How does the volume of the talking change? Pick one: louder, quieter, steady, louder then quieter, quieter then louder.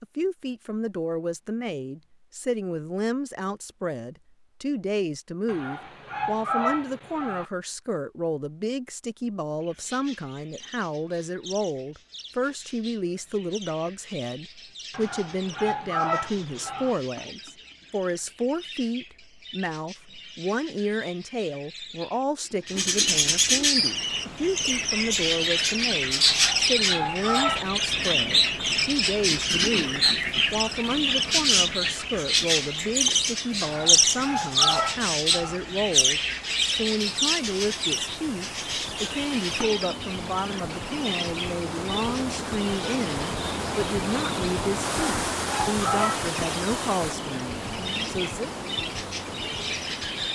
steady.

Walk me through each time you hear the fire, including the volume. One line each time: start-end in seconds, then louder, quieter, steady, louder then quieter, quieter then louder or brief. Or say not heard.
not heard.